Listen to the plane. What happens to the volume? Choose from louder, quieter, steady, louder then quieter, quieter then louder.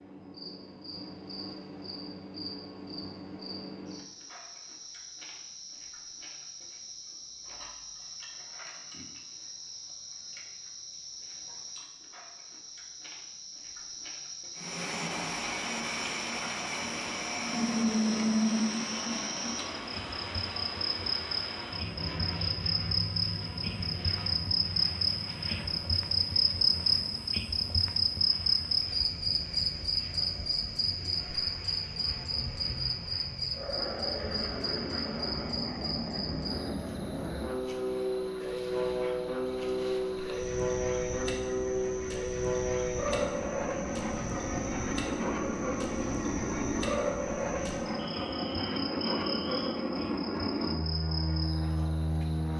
quieter then louder.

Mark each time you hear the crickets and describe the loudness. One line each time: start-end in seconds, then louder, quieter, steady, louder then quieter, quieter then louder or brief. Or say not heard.
0.0-52.5 louder then quieter.